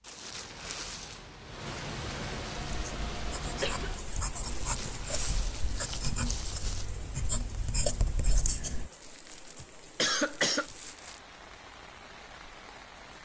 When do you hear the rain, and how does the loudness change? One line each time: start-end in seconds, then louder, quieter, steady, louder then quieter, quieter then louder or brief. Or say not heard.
0.0-13.2 quieter.